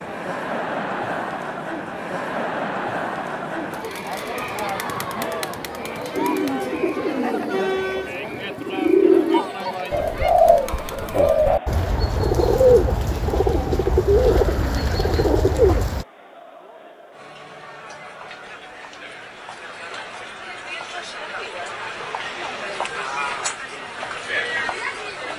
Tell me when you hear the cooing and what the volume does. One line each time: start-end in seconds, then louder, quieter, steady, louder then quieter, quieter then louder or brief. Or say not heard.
6.2-16.1 louder.